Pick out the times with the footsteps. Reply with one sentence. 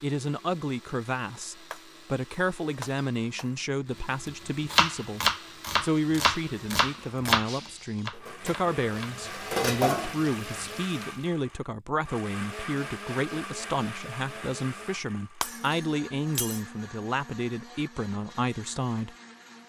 You can't hear the footsteps here.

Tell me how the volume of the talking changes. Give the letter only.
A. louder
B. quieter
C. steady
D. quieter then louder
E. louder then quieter
C.